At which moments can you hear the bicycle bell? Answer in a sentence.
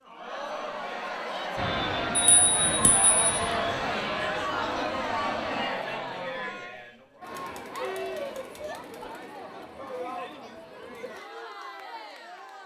The bicycle bell can be heard from 2.1 to 3.5 s.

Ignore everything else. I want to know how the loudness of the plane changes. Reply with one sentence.
The loudness of the plane stays about the same.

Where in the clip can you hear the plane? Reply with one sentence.
You can hear the plane from 1.6 to 5.7 s.